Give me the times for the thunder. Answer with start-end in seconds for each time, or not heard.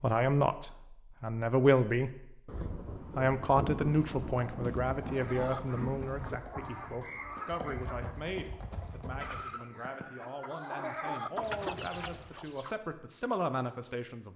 2.5-6.3.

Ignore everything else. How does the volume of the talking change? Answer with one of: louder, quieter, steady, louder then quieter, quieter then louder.
quieter then louder.